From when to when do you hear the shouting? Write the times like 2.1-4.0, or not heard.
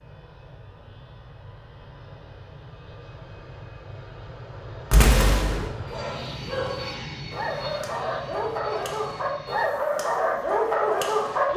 not heard.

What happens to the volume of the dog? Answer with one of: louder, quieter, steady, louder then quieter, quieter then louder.
louder.